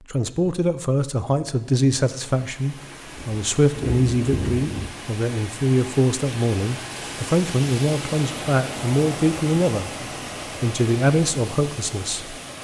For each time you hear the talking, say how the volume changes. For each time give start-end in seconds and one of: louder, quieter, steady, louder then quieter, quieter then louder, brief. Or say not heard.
0.1-9.9 steady
10.6-12.3 brief.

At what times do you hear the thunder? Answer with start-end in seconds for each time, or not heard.
3.1-4.9.